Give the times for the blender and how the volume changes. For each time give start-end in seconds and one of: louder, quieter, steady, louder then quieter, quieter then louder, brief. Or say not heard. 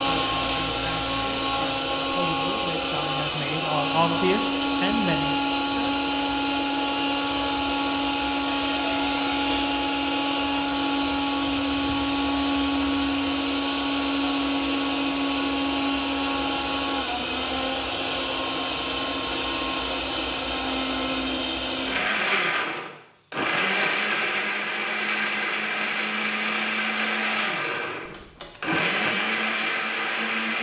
0.0-30.5 steady.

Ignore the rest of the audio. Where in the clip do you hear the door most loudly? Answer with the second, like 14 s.
9 s.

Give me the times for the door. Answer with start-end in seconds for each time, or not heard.
8.4-9.7, 28.1-28.6.